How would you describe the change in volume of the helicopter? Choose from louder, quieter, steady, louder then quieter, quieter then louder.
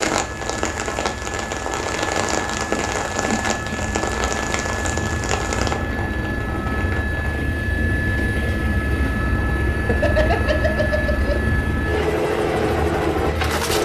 louder.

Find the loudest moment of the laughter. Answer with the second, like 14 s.
10 s.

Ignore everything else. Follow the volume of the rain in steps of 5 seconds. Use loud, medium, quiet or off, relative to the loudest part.
loud, medium, medium.